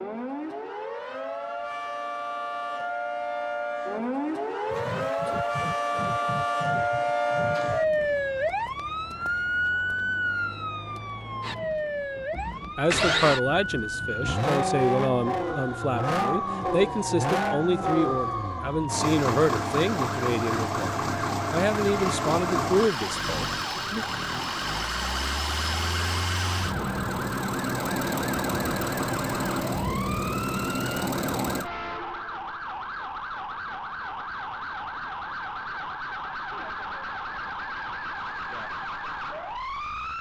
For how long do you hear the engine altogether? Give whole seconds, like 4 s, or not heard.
24 s.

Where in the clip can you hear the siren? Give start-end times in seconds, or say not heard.
0.0-40.1.